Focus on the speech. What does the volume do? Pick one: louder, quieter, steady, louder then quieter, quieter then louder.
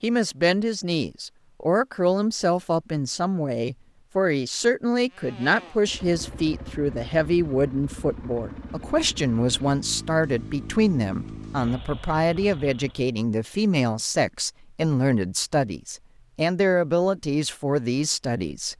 steady.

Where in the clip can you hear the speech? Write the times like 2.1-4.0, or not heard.
0.0-18.7.